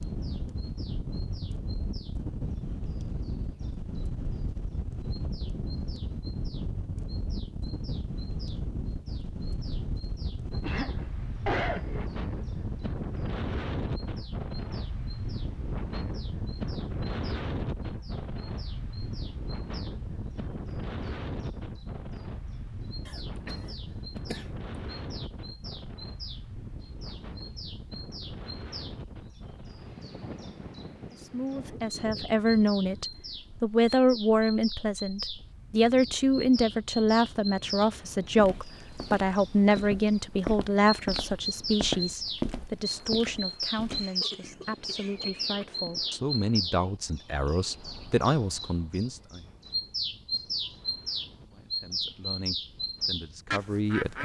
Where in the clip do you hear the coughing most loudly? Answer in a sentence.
The volume of the coughing peaks at 12 seconds.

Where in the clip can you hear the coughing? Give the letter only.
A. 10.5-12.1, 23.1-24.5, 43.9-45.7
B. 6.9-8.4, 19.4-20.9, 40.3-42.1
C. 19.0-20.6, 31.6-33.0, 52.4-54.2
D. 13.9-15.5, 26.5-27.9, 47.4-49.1
A.